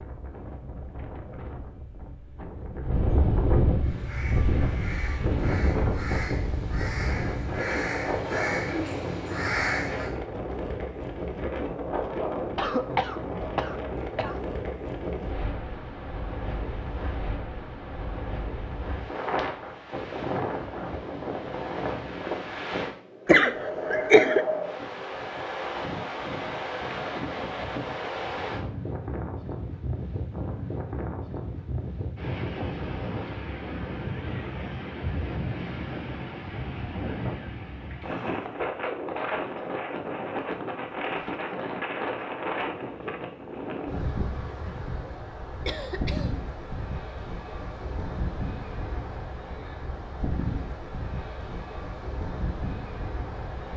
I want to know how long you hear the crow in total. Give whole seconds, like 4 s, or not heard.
6 s.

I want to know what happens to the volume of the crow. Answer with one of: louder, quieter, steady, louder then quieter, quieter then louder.
louder.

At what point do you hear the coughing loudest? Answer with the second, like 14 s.
24 s.